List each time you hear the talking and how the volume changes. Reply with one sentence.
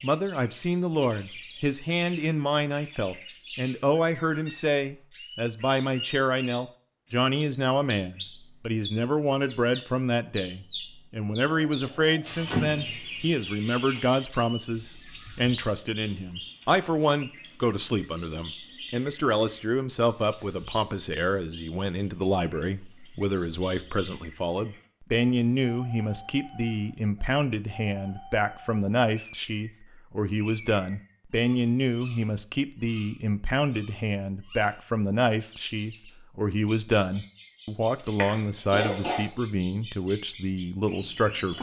The talking can be heard from 0.0 to 41.5 s, at a steady volume.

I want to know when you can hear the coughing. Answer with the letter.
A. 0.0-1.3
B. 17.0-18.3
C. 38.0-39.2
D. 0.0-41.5
C.